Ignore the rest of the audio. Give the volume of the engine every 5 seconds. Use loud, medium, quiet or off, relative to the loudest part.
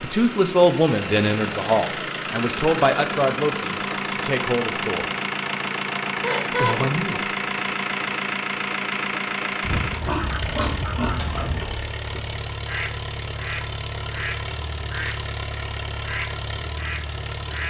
loud, loud, medium, medium.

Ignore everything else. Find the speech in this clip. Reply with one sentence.
You can hear the speech from 0.0 to 5.1 s and from 6.5 to 7.3 s.